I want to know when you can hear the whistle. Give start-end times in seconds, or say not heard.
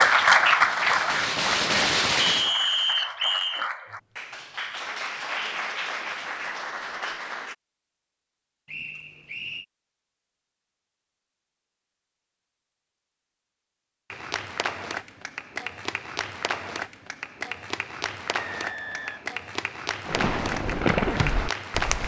2.1-3.7, 8.7-9.7, 18.5-19.3.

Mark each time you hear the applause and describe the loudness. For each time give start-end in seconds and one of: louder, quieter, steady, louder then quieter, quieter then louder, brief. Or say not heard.
0.0-7.5 quieter
14.1-22.0 steady.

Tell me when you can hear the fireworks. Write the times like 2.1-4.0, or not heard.
0.0-2.5, 20.1-22.0.